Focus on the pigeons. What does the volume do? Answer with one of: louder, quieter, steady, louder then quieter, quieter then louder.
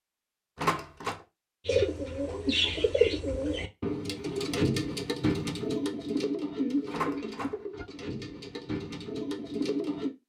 quieter.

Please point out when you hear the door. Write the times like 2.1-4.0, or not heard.
0.6-1.2, 6.9-7.6.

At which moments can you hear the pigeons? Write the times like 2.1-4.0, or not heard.
1.6-10.2.